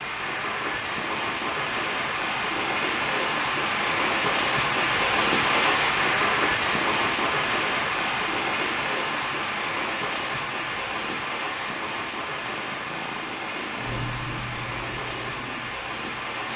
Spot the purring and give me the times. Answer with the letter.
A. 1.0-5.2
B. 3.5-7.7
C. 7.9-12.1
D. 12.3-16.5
D.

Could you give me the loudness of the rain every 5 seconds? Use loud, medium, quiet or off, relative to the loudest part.
loud, loud, medium, medium.